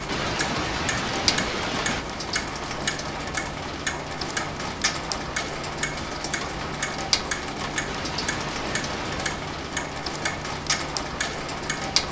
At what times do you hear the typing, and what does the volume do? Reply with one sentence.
You can't hear the typing here.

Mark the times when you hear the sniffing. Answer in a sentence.
The sniffing can be heard from 0.1 to 2.0 s and from 7.8 to 9.4 s.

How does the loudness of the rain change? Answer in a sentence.
The volume of the rain stays about the same.